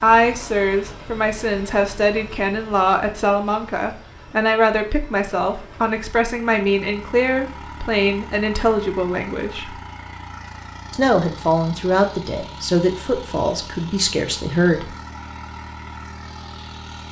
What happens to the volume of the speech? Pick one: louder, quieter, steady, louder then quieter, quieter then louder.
steady.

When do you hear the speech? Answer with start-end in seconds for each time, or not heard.
0.0-9.8, 10.9-14.9.